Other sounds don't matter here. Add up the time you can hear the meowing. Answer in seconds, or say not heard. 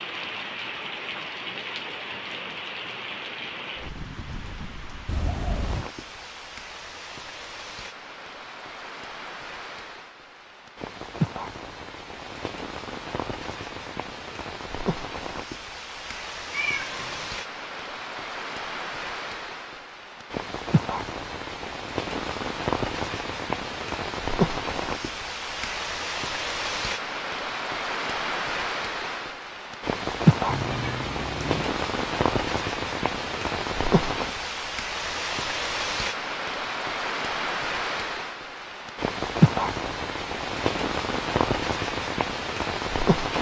3 s.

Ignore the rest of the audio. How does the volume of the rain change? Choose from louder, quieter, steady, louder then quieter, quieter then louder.
louder.